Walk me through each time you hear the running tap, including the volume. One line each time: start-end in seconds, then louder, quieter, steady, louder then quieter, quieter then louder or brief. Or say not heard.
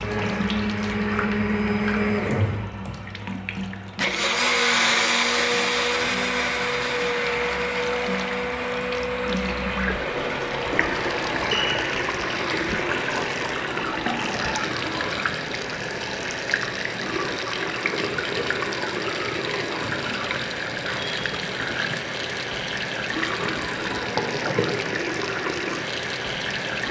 0.0-26.8 louder.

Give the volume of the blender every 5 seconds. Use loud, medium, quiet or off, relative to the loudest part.
loud, loud, medium, off, off, off.